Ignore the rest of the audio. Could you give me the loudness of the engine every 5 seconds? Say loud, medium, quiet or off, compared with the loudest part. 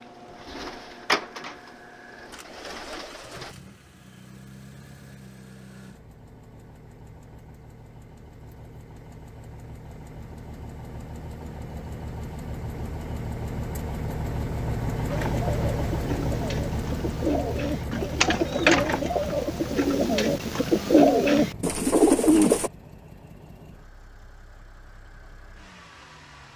quiet, quiet, loud, loud, quiet, quiet.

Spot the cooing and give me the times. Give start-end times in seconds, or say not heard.
0.0-3.5, 15.1-22.7.